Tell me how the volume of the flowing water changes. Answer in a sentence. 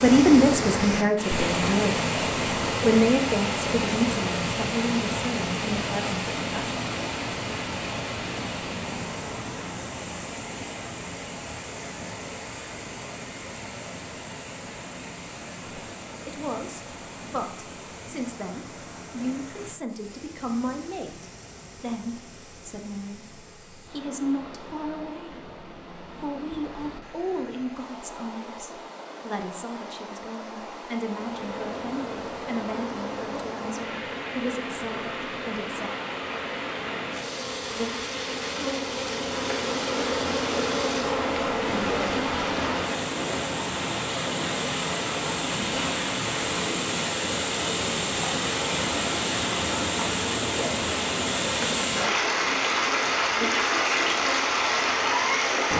The volume of the flowing water goes down, then up.